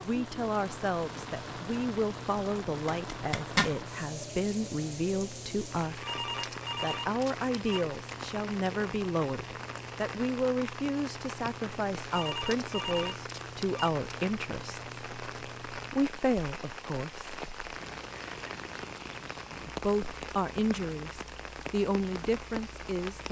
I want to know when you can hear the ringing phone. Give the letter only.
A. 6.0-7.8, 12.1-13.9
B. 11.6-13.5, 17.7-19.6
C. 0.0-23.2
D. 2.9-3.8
A.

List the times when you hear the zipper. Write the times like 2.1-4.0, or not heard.
2.9-3.8.